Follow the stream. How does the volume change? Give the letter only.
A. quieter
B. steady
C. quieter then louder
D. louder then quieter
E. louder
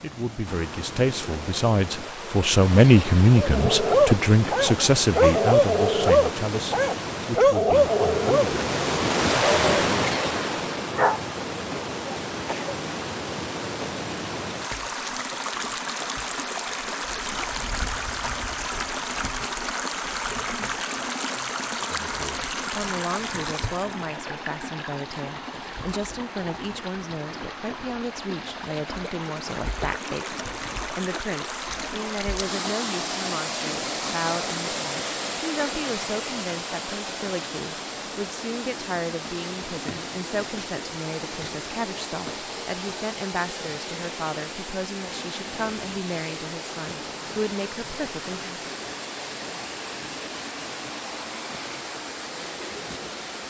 A.